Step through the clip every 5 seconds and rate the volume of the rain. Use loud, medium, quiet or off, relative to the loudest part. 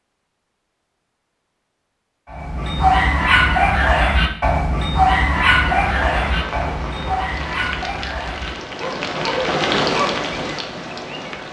off, loud, loud.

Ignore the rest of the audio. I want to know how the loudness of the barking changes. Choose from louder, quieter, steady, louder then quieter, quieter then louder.
quieter.